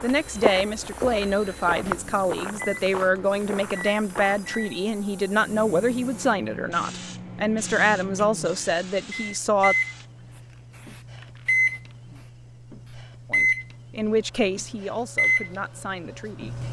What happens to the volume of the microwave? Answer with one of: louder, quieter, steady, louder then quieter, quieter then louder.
louder.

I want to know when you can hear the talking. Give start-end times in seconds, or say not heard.
0.0-9.8, 13.2-16.6.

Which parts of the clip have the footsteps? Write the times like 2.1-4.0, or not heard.
0.0-4.6.